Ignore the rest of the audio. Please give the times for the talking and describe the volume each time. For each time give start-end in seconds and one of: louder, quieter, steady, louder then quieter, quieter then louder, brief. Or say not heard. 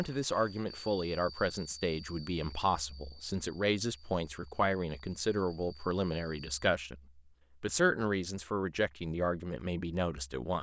0.0-10.5 steady.